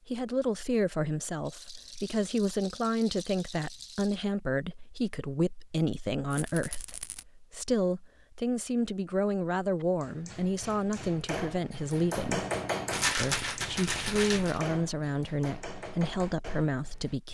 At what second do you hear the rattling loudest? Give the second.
13 s.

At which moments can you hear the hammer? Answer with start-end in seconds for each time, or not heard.
9.8-17.1.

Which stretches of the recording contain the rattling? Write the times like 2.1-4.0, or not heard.
1.4-4.2, 6.3-7.2, 12.9-14.6.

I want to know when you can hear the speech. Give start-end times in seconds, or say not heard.
0.1-12.4, 13.2-17.3.